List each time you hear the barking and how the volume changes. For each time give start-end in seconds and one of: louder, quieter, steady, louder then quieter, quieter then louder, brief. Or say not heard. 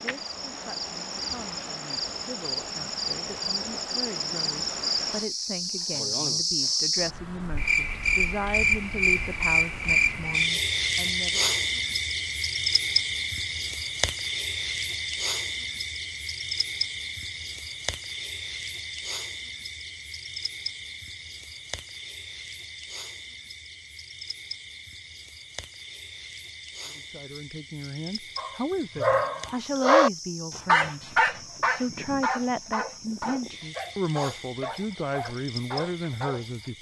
28.4-36.7 quieter.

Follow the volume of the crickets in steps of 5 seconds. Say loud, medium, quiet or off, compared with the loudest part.
medium, loud, loud, medium, quiet, quiet, quiet, quiet.